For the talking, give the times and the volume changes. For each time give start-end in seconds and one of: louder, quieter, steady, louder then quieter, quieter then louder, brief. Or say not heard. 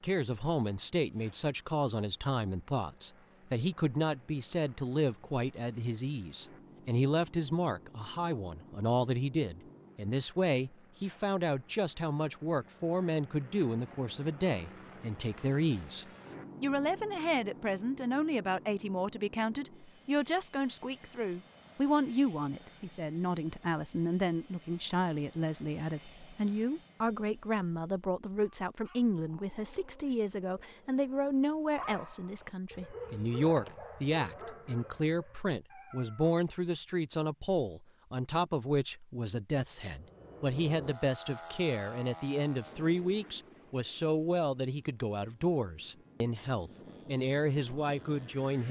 0.0-48.6 steady.